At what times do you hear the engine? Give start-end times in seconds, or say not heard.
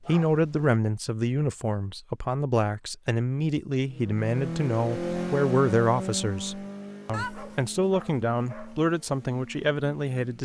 3.9-10.4.